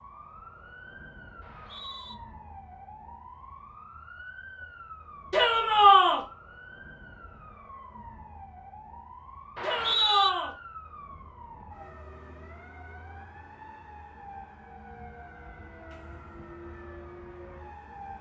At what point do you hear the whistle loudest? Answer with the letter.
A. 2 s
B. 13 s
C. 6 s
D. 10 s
D.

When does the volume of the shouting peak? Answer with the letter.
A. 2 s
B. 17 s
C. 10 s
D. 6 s
D.